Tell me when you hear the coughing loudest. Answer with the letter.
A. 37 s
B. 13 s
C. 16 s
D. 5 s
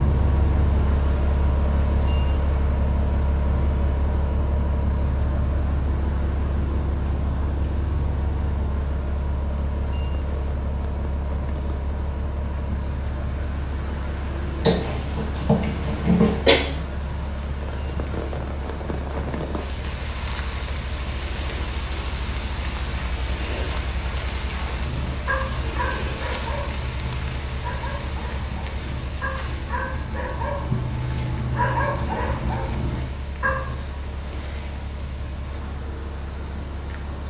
C.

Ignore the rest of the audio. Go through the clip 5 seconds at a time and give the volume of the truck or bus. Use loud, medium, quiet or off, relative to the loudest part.
loud, loud, medium, medium, medium, medium, medium, medium.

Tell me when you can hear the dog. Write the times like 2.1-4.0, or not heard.
24.5-34.0.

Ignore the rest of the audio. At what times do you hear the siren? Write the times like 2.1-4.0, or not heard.
not heard.